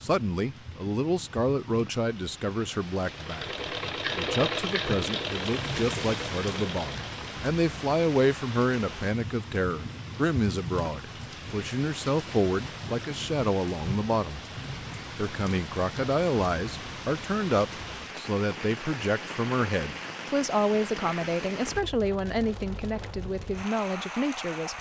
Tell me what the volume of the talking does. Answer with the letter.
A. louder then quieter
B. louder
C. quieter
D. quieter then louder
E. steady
E.